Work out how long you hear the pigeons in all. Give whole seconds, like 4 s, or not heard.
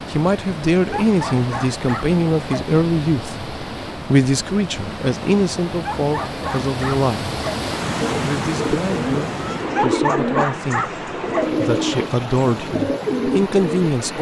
6 s.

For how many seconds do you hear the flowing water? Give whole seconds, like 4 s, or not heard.
14 s.